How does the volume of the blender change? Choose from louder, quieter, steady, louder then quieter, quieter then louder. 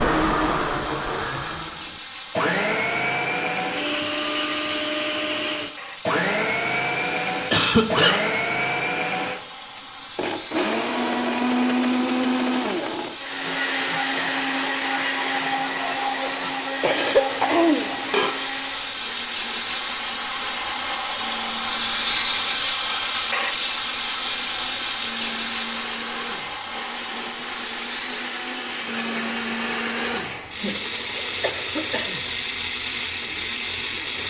quieter then louder.